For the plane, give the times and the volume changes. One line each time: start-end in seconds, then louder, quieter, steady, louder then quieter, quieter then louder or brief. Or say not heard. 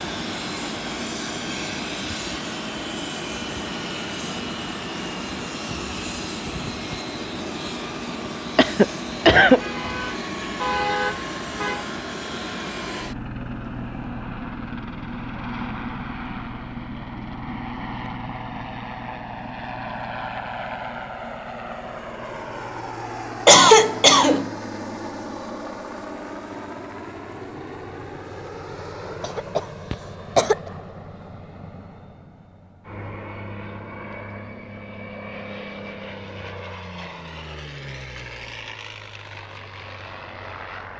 0.0-40.9 quieter.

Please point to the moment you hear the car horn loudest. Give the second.
11 s.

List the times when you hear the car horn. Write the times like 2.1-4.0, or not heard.
9.4-11.8.